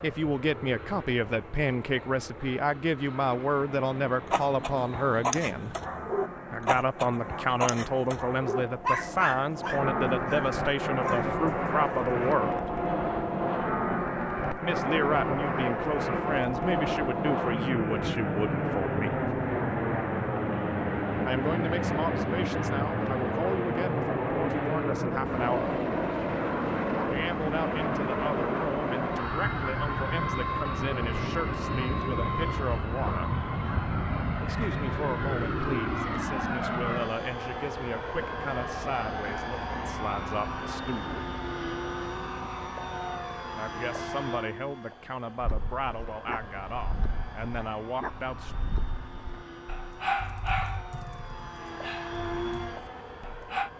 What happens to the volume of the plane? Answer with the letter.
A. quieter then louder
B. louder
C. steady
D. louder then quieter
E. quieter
D.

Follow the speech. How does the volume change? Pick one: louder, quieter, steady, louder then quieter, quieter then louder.
quieter.